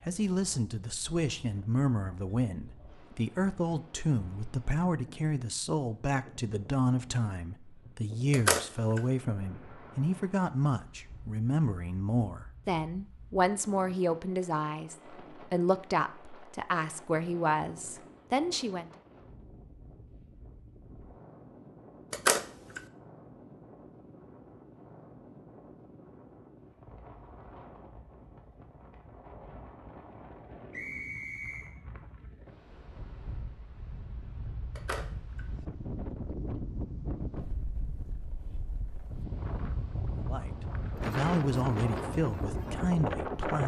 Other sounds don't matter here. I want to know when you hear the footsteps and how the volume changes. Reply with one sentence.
You can't hear the footsteps here.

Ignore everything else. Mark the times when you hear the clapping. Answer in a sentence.
The clapping can't be heard in this clip.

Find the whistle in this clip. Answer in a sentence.
The whistle can be heard from 30.7 to 31.8 s.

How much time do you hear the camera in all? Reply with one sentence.
The camera can be heard for 2 seconds in total.